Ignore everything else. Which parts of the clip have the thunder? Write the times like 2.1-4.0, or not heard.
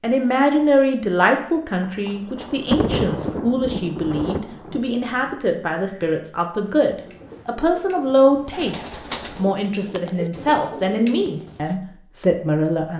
2.0-5.3.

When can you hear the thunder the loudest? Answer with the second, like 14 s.
3 s.